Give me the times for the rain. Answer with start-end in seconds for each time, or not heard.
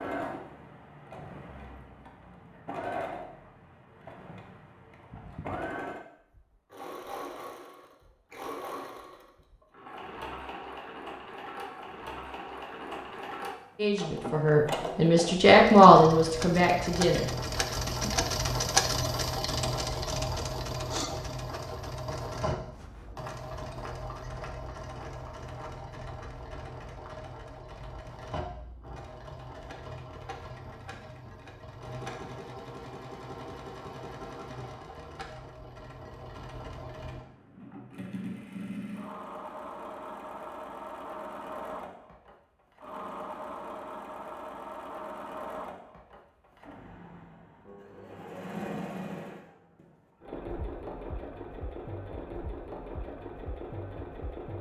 not heard.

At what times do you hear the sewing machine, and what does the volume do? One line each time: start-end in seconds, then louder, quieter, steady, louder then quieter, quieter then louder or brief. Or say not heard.
0.0-54.5 louder then quieter.